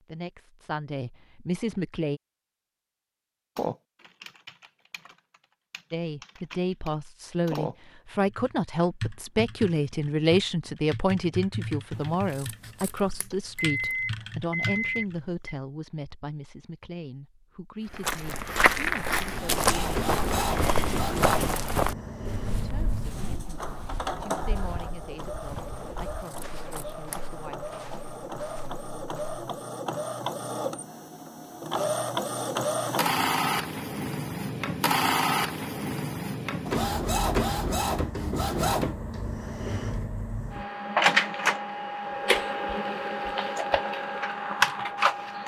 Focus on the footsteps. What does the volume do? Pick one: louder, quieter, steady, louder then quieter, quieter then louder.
quieter.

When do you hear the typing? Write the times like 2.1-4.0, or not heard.
3.5-15.2.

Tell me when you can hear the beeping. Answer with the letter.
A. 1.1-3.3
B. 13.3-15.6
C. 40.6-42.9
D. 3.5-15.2
B.